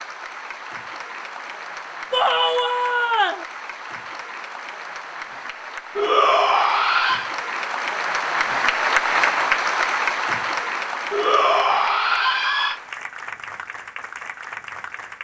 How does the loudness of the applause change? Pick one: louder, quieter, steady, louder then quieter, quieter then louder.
louder then quieter.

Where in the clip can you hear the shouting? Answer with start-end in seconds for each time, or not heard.
2.1-3.5, 6.0-7.3, 11.1-12.8.